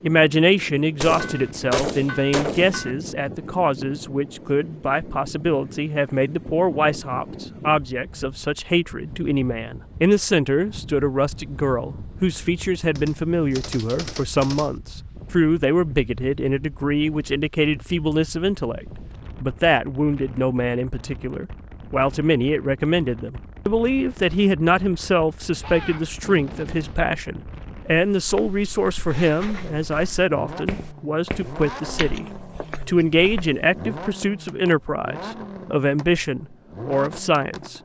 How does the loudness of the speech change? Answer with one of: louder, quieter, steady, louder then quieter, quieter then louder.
steady.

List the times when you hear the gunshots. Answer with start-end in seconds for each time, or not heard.
1.0-3.0, 12.9-14.7, 25.6-27.1.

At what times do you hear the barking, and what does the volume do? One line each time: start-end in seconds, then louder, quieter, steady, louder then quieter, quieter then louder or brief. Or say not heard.
not heard.